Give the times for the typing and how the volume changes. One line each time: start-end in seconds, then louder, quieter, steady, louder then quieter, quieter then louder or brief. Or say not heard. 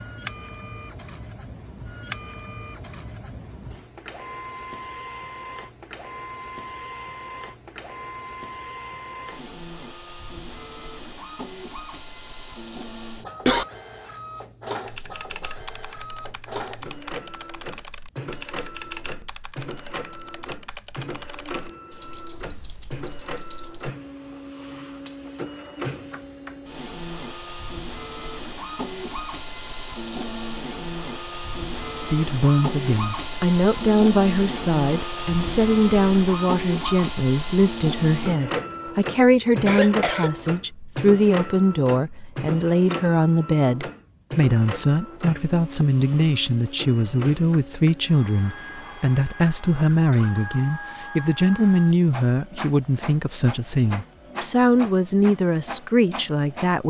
14.8-23.9 quieter.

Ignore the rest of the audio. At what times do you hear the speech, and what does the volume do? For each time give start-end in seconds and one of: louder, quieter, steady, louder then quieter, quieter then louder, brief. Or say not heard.
31.9-56.8 steady.